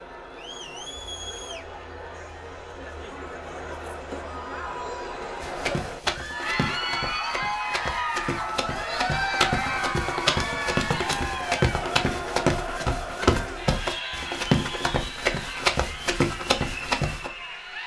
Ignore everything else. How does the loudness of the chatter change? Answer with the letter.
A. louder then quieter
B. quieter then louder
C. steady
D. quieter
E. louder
A.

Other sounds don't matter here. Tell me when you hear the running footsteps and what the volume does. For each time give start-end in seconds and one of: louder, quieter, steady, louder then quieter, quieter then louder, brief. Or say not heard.
5.4-17.3 louder.